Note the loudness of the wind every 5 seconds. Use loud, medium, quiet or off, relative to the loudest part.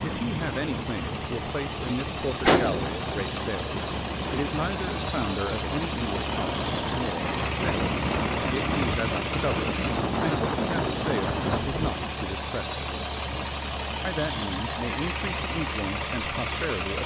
medium, loud, loud, off.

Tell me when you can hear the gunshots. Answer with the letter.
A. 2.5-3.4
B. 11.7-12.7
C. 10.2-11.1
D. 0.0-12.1
A.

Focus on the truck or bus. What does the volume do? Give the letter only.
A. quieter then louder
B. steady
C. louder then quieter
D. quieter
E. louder
B.